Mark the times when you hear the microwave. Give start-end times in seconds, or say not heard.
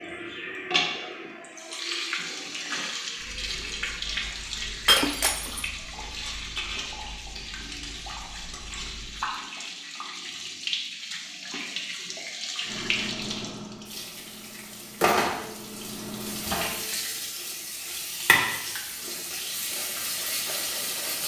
12.7-16.9.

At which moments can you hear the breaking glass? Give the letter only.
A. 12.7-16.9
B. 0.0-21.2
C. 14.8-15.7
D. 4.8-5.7
D.